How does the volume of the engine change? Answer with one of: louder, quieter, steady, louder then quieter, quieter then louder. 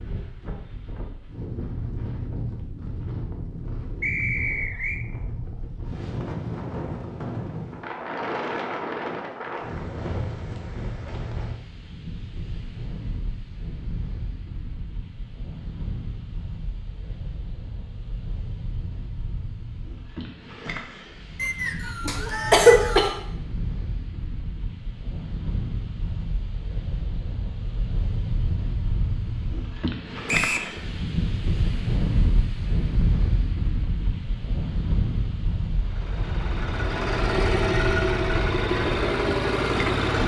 louder.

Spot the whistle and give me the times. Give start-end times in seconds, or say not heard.
4.0-5.0, 21.4-23.1, 30.2-30.7.